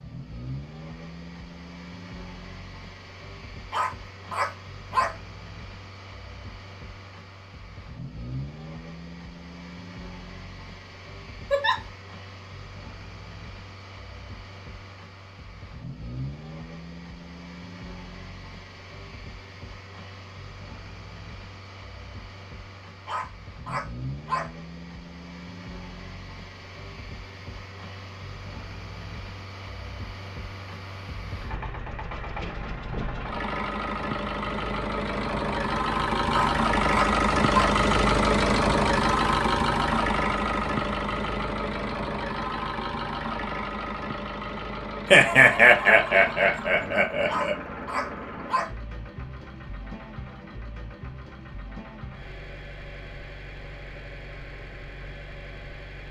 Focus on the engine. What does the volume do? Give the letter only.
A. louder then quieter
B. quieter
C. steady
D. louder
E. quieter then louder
A.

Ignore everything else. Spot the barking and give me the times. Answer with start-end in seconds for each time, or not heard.
3.7-5.2, 23.1-24.5, 36.3-37.7, 47.2-48.7.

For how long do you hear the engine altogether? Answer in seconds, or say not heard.
56 s.